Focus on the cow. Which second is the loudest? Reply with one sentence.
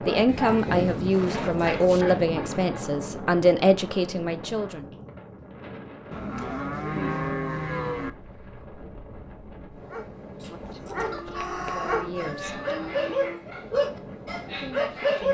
The volume of the cow peaks at 7 seconds.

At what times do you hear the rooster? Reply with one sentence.
You can hear the rooster from 11.1 to 13.0 s.